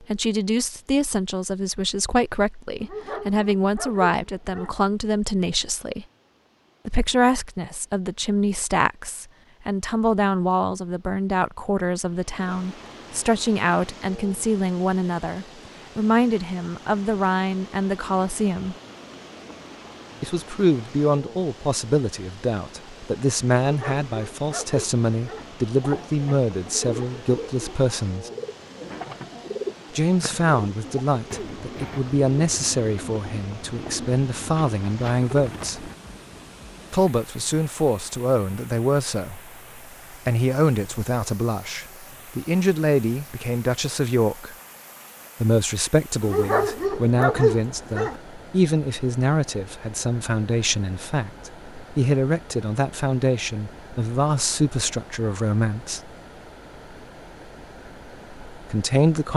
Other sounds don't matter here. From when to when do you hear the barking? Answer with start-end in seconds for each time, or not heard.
2.8-4.8, 23.6-25.5, 46.2-48.2.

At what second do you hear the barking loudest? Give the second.
47 s.